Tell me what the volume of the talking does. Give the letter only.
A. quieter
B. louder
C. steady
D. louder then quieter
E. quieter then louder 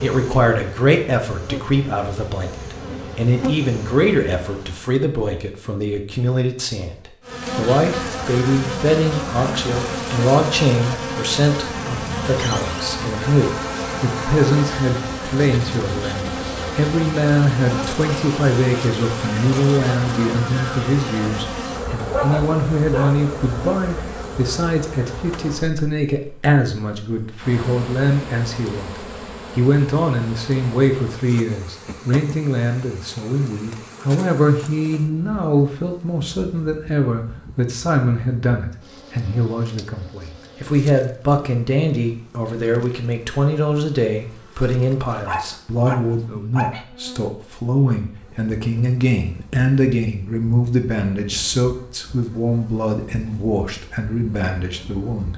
C.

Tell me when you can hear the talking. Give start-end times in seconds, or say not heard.
0.0-28.9, 29.6-55.3.